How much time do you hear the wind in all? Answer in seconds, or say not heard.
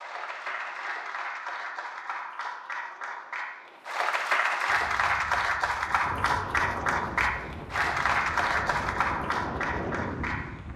6 s.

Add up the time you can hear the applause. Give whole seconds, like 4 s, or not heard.
11 s.